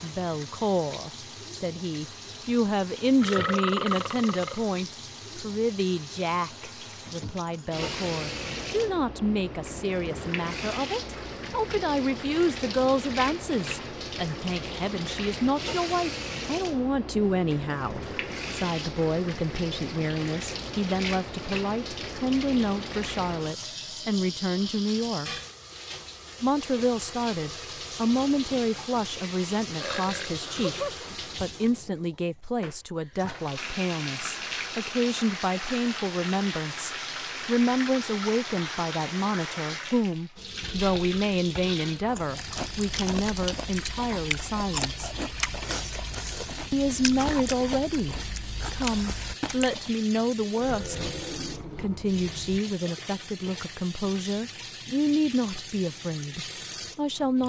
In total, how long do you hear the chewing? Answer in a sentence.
The chewing can be heard for 8 seconds in total.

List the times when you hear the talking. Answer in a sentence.
The talking can be heard from 0.0 to 25.4 s, from 26.4 to 45.1 s, from 46.7 to 51.1 s and from 51.8 to 57.4 s.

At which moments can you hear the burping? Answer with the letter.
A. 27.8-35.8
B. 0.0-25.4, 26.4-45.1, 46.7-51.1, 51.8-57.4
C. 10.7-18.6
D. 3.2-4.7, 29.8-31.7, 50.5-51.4
D.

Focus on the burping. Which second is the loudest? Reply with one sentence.
The volume of the burping peaks at 4 seconds.